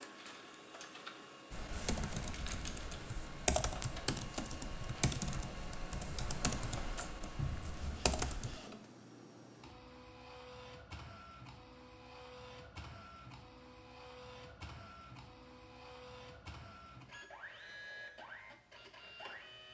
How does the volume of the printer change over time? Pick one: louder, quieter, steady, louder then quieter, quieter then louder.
steady.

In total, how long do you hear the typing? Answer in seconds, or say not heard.
7 s.